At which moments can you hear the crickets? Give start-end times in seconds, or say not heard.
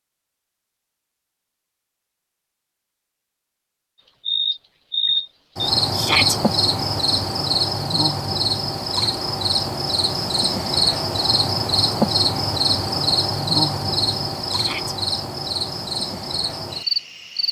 4.2-17.4.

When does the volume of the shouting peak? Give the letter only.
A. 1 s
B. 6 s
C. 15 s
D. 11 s
B.